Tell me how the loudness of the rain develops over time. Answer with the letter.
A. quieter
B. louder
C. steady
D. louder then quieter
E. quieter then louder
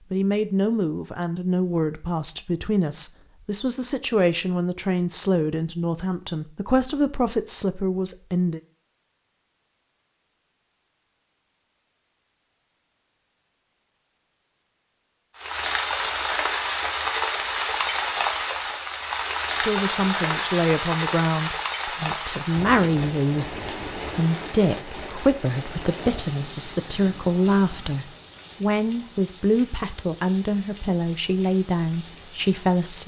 A.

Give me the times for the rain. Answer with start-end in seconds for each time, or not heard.
15.3-33.0.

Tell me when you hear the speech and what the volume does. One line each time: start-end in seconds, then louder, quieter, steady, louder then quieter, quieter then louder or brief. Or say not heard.
0.1-8.6 steady
19.6-33.0 steady.